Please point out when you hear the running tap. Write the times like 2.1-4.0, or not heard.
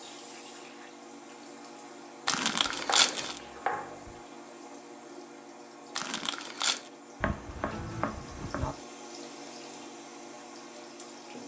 0.0-11.4.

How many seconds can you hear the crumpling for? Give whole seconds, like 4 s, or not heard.
2 s.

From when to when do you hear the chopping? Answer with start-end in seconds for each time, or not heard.
2.2-4.2, 7.2-8.8.